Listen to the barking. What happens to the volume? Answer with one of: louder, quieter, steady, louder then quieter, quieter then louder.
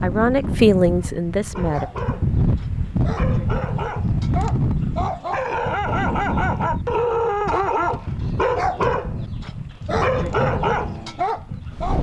louder.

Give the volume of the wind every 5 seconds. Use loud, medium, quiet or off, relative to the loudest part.
loud, medium, medium.